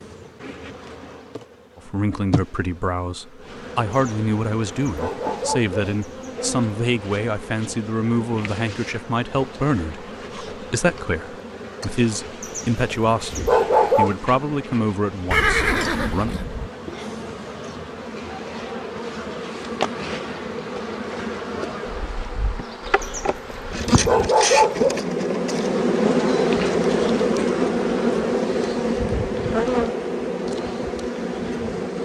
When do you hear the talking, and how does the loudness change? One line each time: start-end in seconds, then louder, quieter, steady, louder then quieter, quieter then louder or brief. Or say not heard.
1.8-16.4 steady.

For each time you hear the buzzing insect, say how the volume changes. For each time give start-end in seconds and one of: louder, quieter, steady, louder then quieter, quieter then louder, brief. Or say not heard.
0.0-32.0 louder.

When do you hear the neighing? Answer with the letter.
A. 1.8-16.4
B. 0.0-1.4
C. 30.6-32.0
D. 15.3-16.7
D.